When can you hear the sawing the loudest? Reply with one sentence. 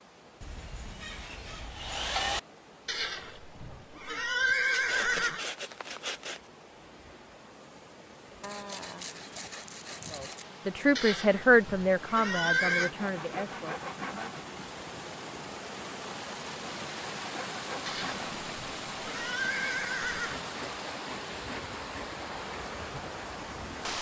The loudest moment of the sawing is at 2 seconds.